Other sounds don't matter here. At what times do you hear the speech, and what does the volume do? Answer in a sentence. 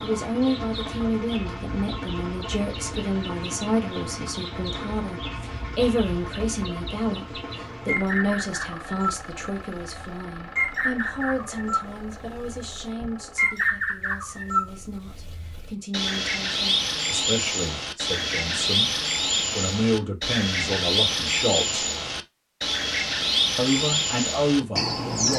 You can hear the speech from 0.0 to 21.9 s, getting quieter then louder; and briefly from 23.6 to 25.3 s.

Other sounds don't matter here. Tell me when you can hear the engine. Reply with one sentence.
You can hear the engine from 0.0 to 13.6 s.